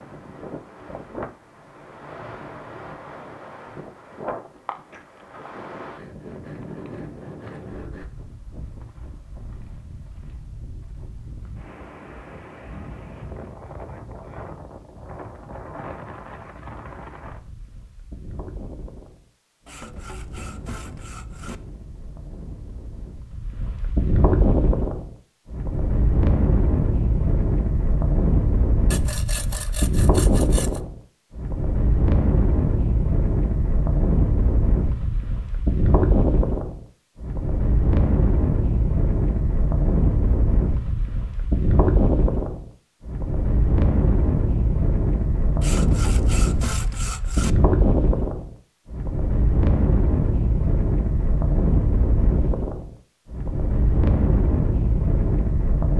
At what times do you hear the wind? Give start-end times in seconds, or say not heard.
0.0-55.9.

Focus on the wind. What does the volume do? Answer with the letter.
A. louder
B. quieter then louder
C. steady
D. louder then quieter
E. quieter
A.